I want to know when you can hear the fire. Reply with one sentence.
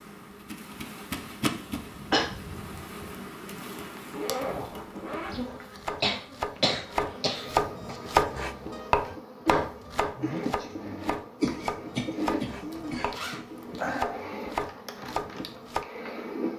The fire can't be heard in this clip.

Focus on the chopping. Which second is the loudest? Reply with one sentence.
The loudest moment of the chopping is at 8 seconds.